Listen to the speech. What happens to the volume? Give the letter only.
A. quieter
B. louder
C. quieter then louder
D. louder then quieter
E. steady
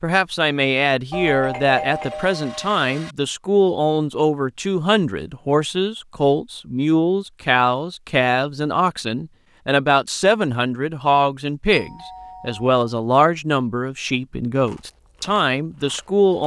E.